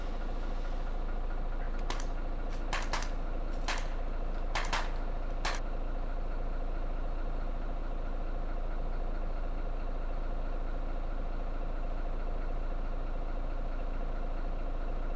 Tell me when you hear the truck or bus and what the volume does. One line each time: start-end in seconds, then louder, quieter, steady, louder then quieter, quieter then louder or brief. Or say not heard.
0.0-15.1 steady.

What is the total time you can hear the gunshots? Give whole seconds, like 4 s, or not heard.
4 s.